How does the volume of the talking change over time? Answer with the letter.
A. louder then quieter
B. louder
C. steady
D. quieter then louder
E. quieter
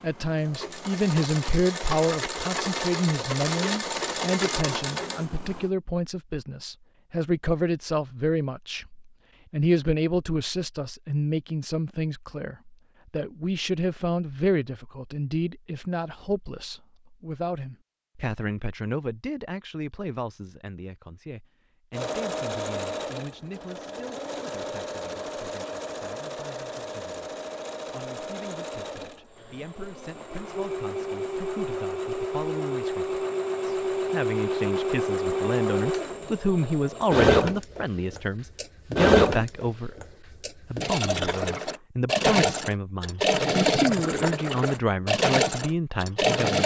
D.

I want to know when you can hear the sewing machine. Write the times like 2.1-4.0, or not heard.
0.0-5.7, 21.9-46.6.